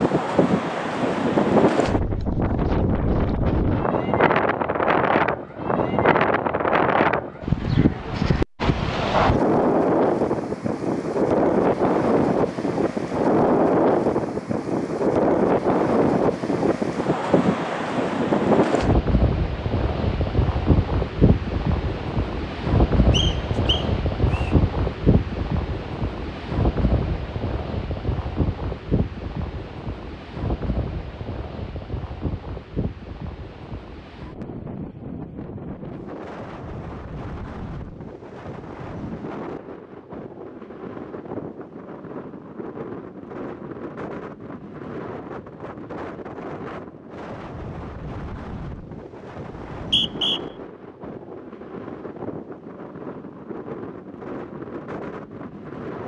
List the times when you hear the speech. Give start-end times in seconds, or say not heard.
not heard.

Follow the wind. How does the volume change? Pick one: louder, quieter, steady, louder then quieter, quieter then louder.
quieter.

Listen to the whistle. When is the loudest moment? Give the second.
50 s.